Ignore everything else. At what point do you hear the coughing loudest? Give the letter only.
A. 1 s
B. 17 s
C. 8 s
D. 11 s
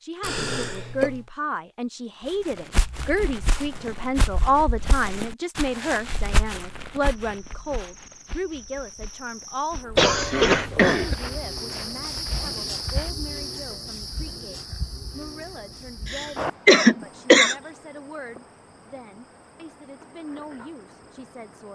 B.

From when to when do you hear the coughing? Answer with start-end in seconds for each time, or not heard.
0.2-1.2, 9.9-11.2, 16.1-17.6.